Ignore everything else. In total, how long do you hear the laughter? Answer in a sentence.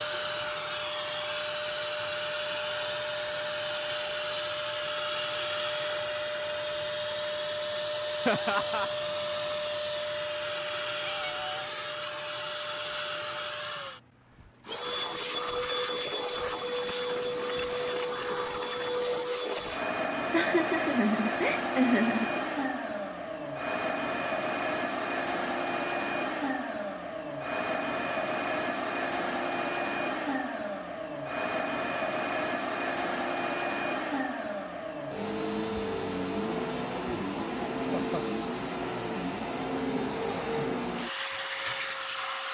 The laughter can be heard for 3 seconds in total.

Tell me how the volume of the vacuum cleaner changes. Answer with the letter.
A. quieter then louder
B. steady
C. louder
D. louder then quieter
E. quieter
B.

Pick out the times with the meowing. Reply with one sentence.
You can hear the meowing from 11.0 to 11.7 s.